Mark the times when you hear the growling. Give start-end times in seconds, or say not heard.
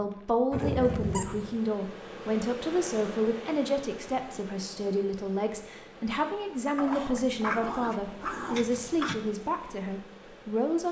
0.5-1.6, 6.8-9.2.